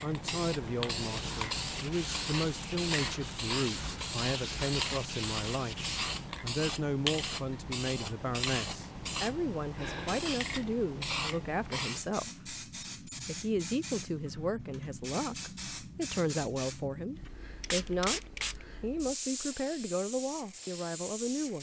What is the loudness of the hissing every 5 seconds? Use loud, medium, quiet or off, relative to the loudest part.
loud, loud, loud, loud, medium.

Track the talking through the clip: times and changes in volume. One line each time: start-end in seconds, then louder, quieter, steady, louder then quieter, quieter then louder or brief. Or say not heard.
0.0-21.5 steady.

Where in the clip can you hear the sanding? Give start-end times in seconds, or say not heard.
1.0-6.3.